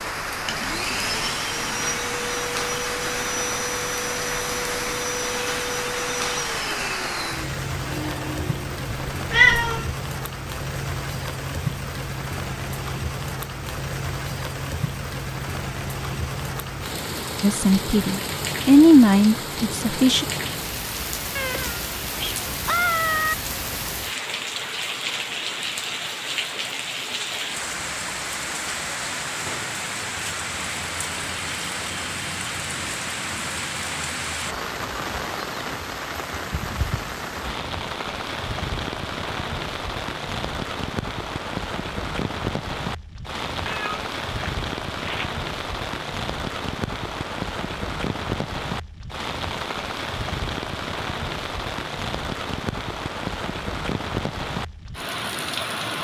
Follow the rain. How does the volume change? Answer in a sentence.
The loudness of the rain stays about the same.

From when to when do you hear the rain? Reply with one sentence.
The rain can be heard from 0.0 to 55.9 s.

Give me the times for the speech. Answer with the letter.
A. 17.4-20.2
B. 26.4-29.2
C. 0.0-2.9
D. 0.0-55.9
A.